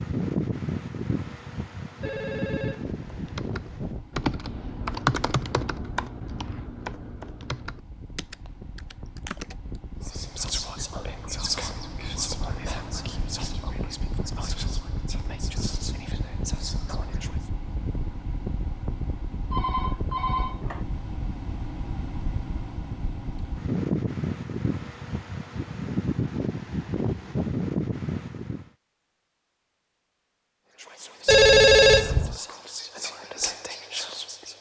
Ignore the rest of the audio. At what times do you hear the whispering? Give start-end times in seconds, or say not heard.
10.0-17.5, 30.8-34.5.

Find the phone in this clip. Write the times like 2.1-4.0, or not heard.
2.0-4.0, 19.5-20.9, 31.2-32.4.